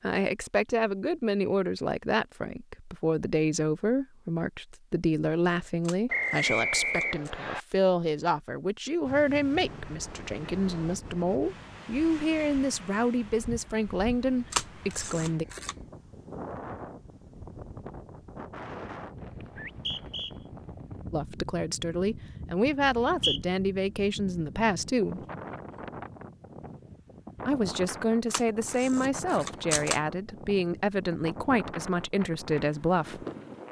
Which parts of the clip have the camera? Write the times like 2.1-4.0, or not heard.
5.8-7.3, 14.5-15.8, 28.3-30.0.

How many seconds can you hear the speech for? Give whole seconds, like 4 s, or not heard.
25 s.